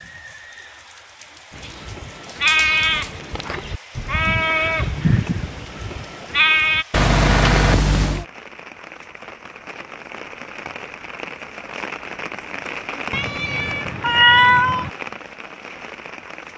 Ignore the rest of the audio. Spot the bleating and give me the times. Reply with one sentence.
The bleating can be heard from 1.5 to 6.8 s.